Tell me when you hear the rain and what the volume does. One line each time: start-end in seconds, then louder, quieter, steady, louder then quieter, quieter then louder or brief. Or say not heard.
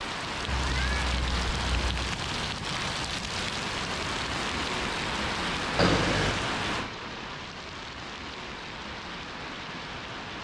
0.0-10.4 quieter.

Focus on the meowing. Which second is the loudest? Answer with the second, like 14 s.
6 s.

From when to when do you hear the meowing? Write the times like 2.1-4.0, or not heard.
0.5-2.0, 5.8-6.5.